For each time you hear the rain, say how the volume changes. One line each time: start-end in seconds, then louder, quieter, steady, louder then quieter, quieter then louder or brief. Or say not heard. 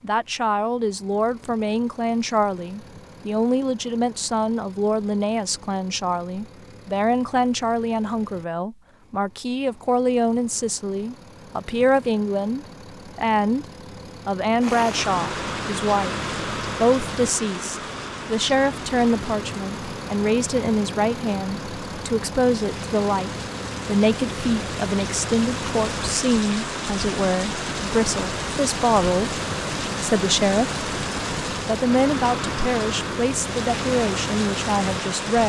14.6-35.4 quieter then louder.